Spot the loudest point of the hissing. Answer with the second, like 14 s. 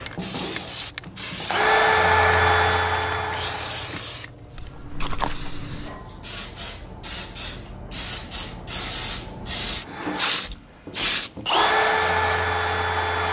11 s.